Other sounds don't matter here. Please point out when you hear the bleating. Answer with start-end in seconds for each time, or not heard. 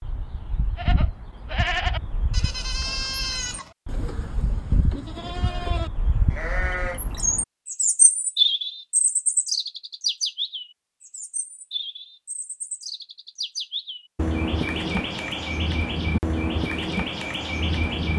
0.8-7.0.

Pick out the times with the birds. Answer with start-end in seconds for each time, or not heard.
0.0-18.1.